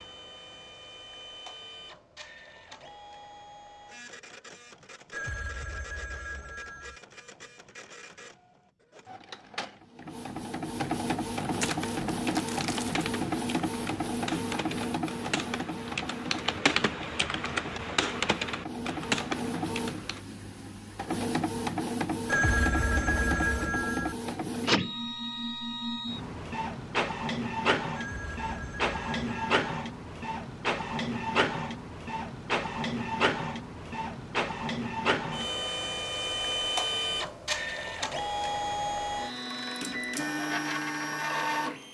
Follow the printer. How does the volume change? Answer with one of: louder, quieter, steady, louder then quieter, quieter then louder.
louder.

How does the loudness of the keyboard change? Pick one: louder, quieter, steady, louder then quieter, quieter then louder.
louder.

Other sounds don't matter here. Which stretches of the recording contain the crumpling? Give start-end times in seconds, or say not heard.
11.6-13.1.